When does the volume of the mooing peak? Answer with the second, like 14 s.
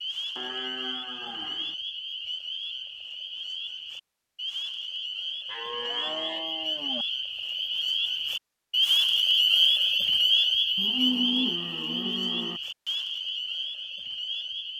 11 s.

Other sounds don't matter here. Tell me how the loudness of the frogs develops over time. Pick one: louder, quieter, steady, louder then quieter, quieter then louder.
louder then quieter.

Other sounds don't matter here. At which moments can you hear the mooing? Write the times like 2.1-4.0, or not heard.
0.3-1.8, 5.5-7.0, 10.8-12.6.